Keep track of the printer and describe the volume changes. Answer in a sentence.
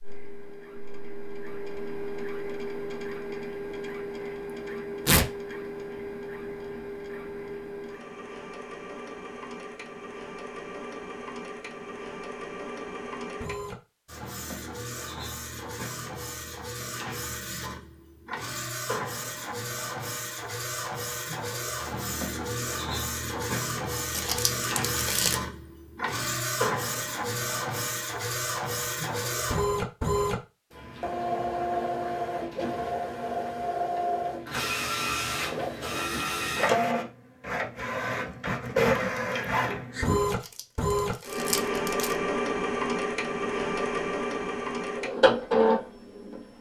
The loudness of the printer goes up.